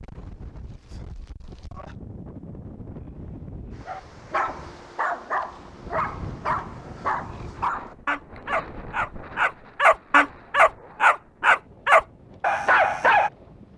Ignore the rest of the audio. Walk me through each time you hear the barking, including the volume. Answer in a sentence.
You can hear the barking from 3.9 to 13.3 s, getting louder.